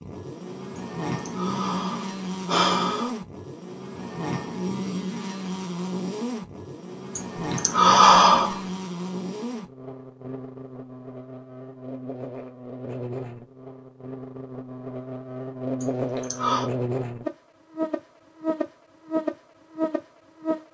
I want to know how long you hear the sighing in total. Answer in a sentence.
The sighing can be heard for 5 seconds in total.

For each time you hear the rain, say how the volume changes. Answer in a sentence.
You can't hear the rain here.